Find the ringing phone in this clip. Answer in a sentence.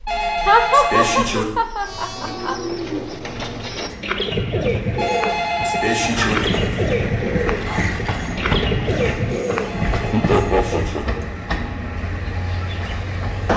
The ringing phone can be heard from 0.1 to 1.4 s, from 5.0 to 6.3 s and from 9.7 to 11.1 s.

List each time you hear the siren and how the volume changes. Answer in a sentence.
The siren can't be heard in this clip.